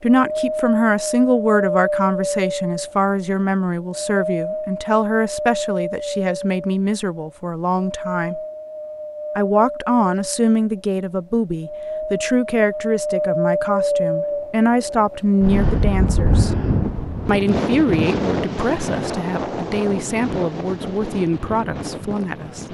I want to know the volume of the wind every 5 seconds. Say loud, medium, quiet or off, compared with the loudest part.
loud, medium, loud, loud, medium.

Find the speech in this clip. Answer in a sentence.
The speech can be heard from 0.0 to 8.4 s, from 9.3 to 16.5 s and from 17.2 to 22.6 s.